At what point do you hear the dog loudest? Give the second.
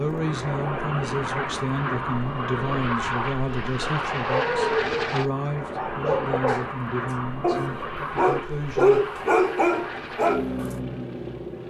9 s.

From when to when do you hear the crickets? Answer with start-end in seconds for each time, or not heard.
not heard.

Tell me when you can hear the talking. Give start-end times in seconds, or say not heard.
0.0-9.0.